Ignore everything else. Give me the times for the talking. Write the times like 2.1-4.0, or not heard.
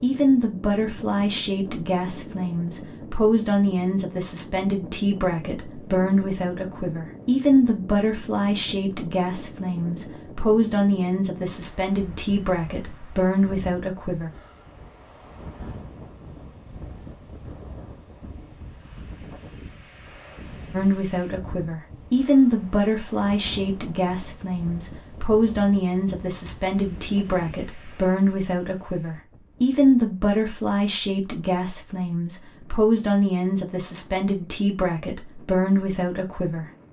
0.0-14.3, 20.7-36.6.